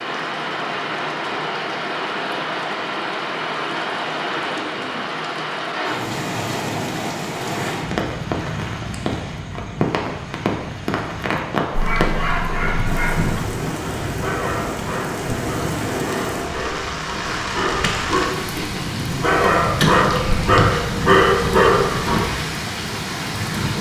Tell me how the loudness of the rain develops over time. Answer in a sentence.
The loudness of the rain stays about the same.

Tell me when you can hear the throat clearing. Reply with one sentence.
The throat clearing can be heard from 4.5 to 5.2 s and from 18.4 to 19.1 s.